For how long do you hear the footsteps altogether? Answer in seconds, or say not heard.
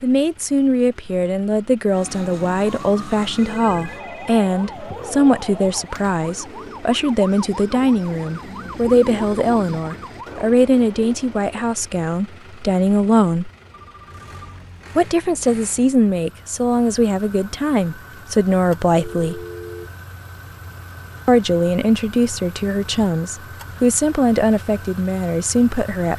not heard.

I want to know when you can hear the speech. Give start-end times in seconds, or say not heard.
0.0-13.5, 14.9-19.4, 21.2-26.1.